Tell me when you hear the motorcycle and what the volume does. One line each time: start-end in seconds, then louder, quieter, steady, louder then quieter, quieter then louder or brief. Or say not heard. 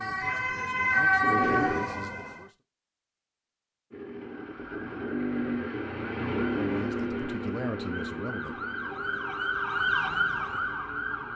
0.2-1.9 brief
3.9-11.3 quieter.